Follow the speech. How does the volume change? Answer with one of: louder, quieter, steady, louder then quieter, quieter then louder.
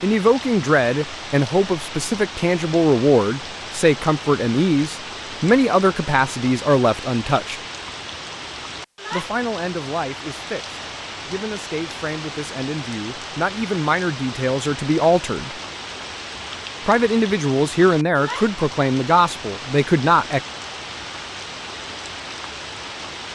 quieter then louder.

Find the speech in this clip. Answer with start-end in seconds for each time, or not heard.
0.0-7.6, 9.1-15.6, 16.9-20.4.